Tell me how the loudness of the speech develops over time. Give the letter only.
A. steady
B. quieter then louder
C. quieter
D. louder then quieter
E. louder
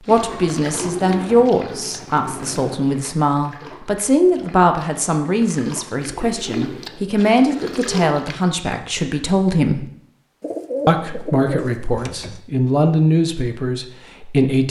A.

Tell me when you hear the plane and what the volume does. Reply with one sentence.
The plane can't be heard in this clip.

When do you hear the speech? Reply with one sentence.
You can hear the speech from 0.1 to 9.8 s and from 10.8 to 14.6 s.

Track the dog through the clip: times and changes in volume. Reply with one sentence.
The dog can't be heard in this clip.